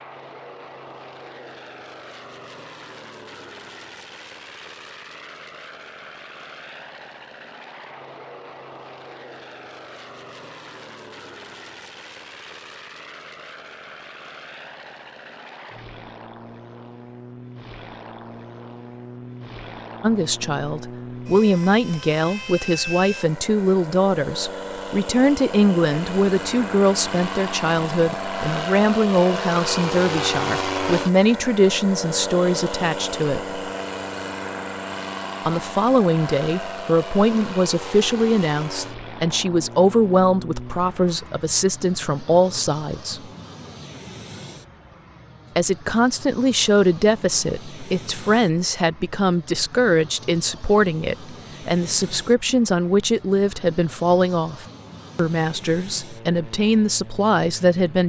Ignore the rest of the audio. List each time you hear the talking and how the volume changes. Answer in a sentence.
The talking can be heard from 20.0 to 33.6 s, at a steady volume; from 35.5 to 43.2 s, at a steady volume; and from 45.5 to 58.0 s, at a steady volume.